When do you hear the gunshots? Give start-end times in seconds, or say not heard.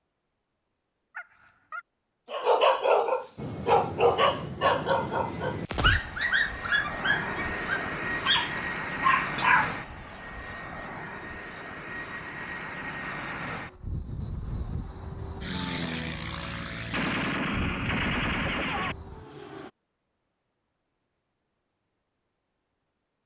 16.9-18.9.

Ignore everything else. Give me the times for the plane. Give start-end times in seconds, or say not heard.
3.4-19.7.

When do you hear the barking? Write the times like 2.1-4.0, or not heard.
1.1-9.8.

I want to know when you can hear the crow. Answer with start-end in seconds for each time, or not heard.
not heard.